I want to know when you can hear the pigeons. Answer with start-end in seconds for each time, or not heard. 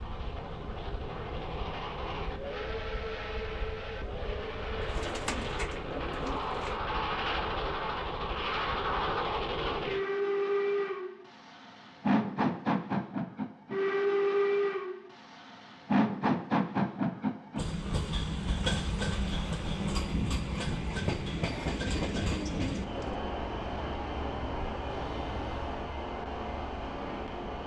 4.8-6.8, 21.3-23.2.